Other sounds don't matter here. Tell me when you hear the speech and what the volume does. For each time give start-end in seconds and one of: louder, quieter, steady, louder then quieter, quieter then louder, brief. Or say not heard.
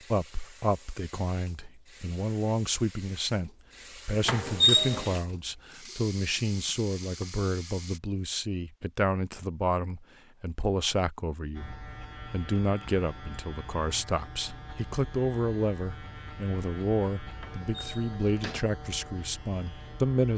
0.1-20.3 steady.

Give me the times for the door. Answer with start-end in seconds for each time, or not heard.
4.2-5.2, 17.4-18.6.